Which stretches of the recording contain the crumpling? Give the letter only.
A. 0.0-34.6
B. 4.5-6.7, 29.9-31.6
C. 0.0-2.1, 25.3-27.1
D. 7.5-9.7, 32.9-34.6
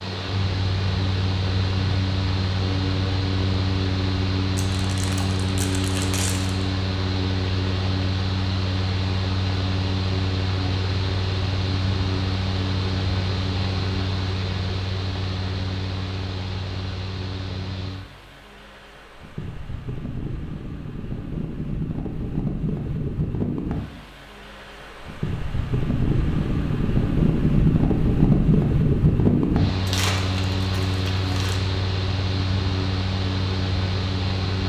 B.